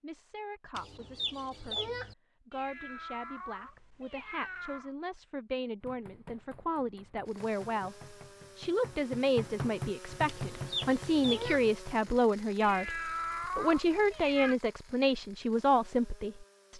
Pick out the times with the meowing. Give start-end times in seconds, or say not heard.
2.5-5.0, 12.6-14.6.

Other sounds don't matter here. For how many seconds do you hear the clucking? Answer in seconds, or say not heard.
3 s.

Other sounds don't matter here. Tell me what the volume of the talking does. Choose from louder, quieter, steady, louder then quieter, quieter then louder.
louder.